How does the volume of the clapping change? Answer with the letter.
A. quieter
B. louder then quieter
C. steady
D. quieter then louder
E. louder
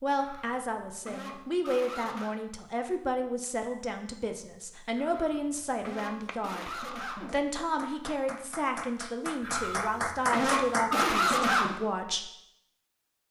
E.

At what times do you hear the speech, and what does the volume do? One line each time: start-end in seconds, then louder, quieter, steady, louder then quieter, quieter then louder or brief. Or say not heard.
0.0-12.3 steady.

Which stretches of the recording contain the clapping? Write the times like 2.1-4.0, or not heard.
6.0-11.1.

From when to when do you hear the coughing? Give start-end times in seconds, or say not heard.
0.1-2.4, 5.0-7.3, 9.4-11.8.